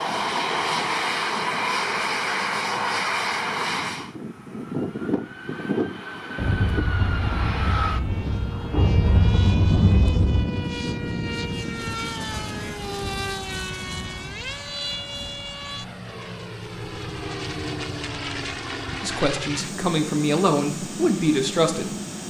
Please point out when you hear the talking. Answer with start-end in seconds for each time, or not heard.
19.0-21.9.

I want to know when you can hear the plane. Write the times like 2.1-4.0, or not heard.
0.0-22.2.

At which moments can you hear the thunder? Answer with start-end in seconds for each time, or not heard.
6.3-10.4.